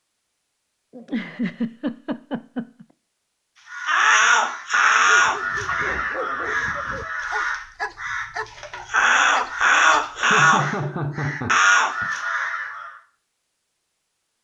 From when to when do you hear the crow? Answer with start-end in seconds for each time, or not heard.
3.7-12.9.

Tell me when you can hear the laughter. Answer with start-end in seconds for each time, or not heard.
0.9-2.9, 5.7-7.1, 10.2-12.1.